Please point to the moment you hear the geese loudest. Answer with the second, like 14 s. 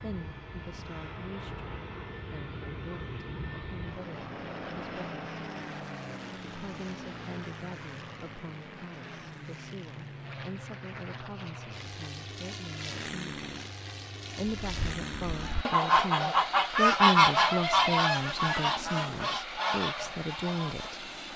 17 s.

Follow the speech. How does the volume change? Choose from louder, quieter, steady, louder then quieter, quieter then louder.
louder.